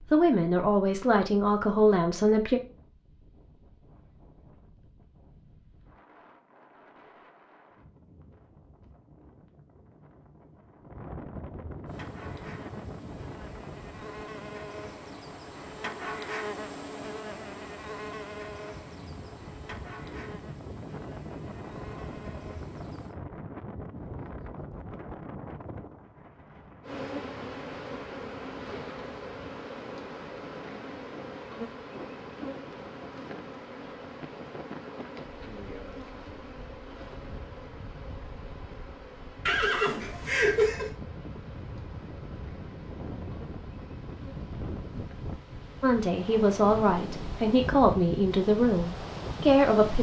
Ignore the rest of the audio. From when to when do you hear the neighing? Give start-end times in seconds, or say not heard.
39.5-40.9.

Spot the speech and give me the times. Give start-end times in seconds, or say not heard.
0.1-2.6, 45.8-49.9.